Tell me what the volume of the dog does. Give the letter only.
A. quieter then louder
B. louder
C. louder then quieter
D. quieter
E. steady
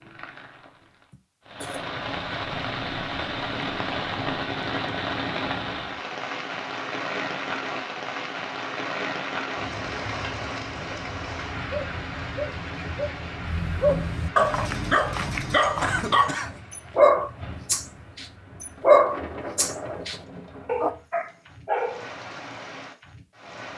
C.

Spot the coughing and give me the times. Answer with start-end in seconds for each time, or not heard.
1.1-1.9, 15.8-16.6.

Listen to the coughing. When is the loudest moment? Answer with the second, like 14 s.
16 s.